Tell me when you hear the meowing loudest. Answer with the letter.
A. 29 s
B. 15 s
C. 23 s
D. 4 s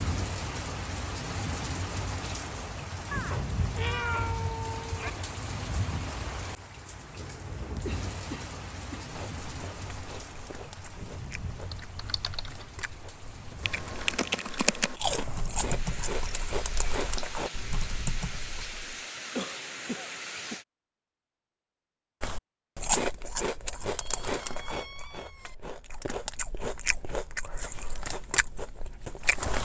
D.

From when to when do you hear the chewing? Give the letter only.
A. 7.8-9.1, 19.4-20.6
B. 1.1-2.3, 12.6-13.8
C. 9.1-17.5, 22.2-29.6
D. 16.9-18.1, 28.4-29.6
C.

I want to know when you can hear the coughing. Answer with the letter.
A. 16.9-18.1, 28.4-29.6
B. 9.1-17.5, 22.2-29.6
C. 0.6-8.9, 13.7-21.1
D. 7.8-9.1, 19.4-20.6
D.